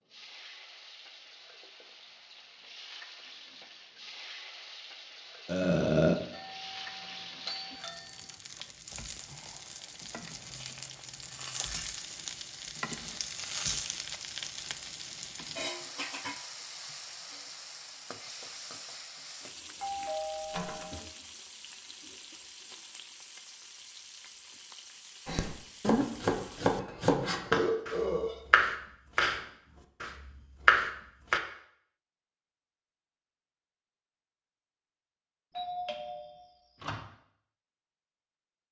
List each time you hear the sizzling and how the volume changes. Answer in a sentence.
You can hear the sizzling from 0.1 to 26.8 s, getting louder then quieter.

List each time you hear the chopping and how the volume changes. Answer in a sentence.
The chopping can be heard from 25.2 to 29.4 s, getting quieter then louder; and briefly from 30.0 to 31.4 s.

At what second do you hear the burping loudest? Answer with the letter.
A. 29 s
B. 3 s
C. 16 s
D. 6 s
D.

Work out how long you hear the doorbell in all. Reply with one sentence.
You can hear the doorbell for 5 seconds altogether.